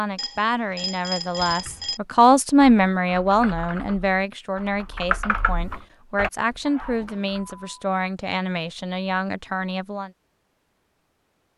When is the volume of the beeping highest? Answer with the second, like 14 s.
1 s.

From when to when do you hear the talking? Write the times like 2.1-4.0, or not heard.
0.0-10.1.